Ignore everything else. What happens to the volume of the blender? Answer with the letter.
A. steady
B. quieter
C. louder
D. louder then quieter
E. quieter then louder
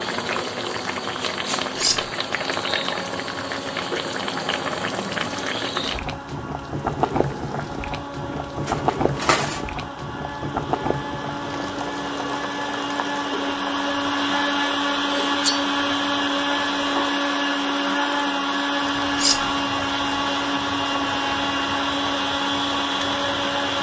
C.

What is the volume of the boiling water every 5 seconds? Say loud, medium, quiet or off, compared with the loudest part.
loud, loud, medium, medium, medium.